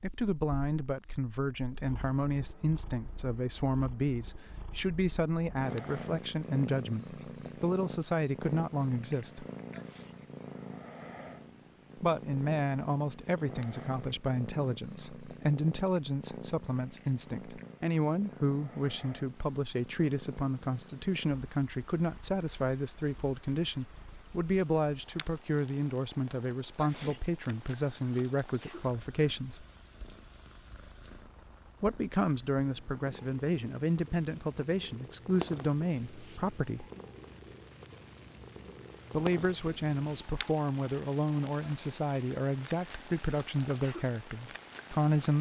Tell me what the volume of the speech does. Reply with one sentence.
The volume of the speech stays about the same.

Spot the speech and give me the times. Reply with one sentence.
The speech can be heard from 0.0 to 9.4 s, from 11.9 to 29.6 s, from 31.8 to 36.9 s and from 39.1 to 45.3 s.